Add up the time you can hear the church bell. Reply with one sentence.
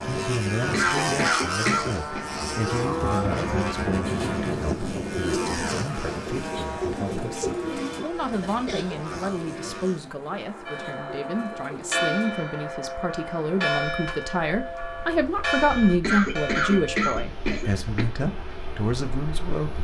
You can hear the church bell for 6 seconds altogether.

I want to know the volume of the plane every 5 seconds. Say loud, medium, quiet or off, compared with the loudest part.
loud, medium, quiet, quiet.